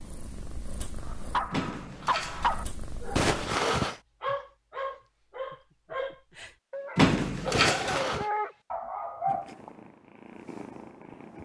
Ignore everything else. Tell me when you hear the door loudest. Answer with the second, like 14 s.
7 s.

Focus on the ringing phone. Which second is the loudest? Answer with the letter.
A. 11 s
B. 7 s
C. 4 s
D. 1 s
C.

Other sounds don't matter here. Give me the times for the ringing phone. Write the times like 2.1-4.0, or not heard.
3.1-4.0, 7.5-8.3.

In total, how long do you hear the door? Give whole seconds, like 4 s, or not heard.
2 s.